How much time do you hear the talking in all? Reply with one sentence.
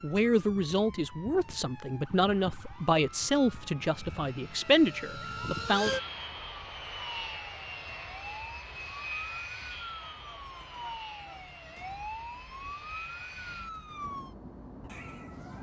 The talking can be heard for 6 seconds in total.